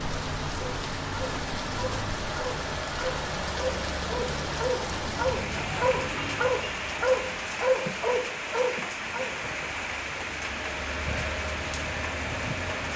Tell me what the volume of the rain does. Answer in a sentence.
The volume of the rain stays about the same.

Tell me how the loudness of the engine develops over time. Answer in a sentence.
The volume of the engine goes down, then up.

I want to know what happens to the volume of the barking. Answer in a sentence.
The volume of the barking goes up.